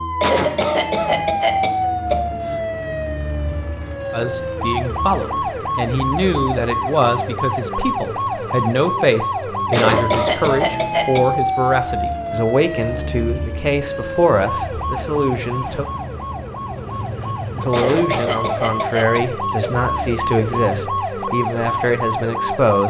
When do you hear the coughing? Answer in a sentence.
The coughing can be heard from 0.2 to 2.1 s, from 9.7 to 11.4 s and from 17.7 to 19.7 s.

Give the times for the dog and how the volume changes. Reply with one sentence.
The dog can't be heard in this clip.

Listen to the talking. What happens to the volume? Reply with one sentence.
The loudness of the talking stays about the same.